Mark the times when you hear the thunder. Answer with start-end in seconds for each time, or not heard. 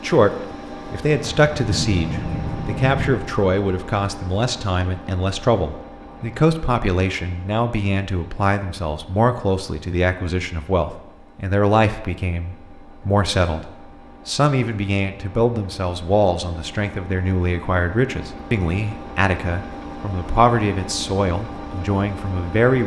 1.4-3.1.